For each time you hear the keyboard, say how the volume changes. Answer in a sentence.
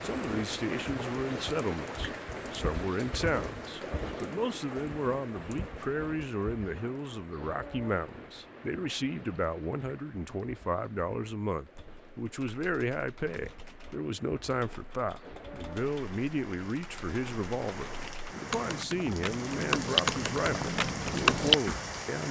The keyboard can be heard from 11.7 to 21.9 s, getting louder.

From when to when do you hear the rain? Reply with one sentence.
The rain can be heard from 0.0 to 22.2 s.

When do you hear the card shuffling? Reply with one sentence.
You can't hear the card shuffling here.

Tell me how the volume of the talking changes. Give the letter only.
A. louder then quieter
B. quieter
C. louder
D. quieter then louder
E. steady
E.